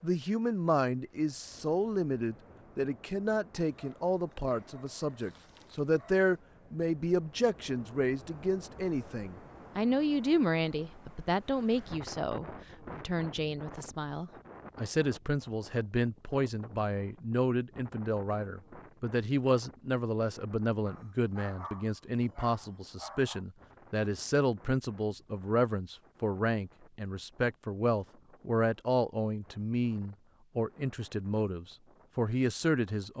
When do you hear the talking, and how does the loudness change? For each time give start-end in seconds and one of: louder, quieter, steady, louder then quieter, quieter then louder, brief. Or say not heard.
0.0-33.1 steady.